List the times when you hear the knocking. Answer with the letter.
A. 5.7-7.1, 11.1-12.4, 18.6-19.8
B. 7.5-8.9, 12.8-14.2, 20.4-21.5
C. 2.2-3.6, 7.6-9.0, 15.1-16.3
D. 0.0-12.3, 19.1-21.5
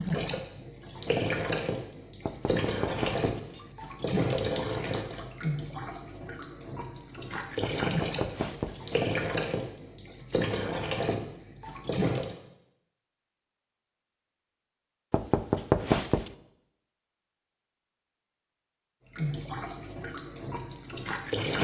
C.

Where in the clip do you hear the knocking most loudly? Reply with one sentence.
The loudest moment of the knocking is at 16 seconds.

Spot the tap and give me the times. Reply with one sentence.
You can hear the tap from 0.0 to 12.3 s and from 19.1 to 21.5 s.